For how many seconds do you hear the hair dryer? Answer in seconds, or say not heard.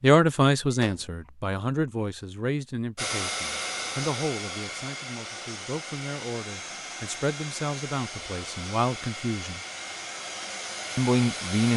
9 s.